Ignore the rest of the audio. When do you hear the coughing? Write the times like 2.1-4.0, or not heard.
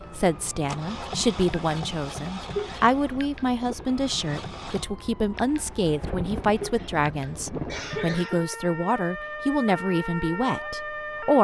2.5-3.0, 6.5-8.6.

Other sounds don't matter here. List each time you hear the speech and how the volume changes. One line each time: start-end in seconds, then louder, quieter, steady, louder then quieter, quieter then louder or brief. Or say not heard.
0.1-11.3 steady.